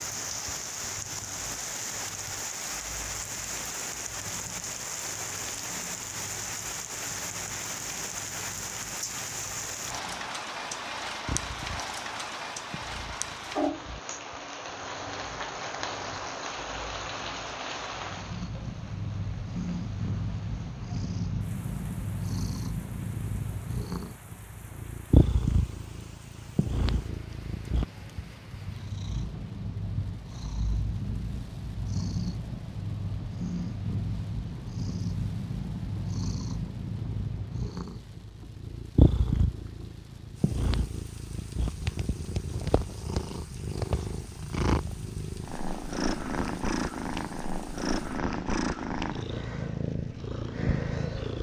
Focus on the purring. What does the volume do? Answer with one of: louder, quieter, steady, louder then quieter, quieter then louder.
louder.